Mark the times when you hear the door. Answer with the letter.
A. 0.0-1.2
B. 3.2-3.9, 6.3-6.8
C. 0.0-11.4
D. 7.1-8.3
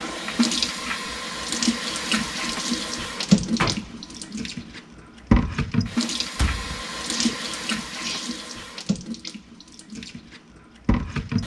B.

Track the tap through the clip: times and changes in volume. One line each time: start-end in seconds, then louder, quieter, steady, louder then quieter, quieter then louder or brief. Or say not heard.
0.0-11.4 quieter.